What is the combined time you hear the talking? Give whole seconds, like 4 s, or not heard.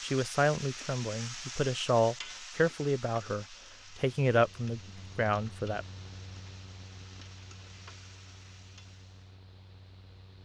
6 s.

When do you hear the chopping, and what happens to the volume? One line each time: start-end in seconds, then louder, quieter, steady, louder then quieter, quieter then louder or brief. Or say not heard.
not heard.